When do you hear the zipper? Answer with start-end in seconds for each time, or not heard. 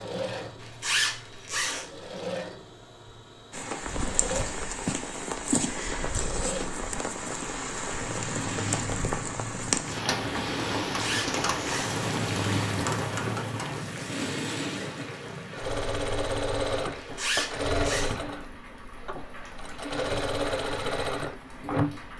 0.6-2.0, 10.8-12.1, 16.9-18.1.